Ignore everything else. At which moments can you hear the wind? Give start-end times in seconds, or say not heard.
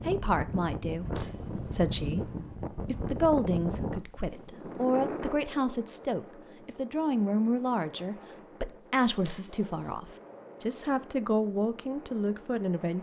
0.0-12.9.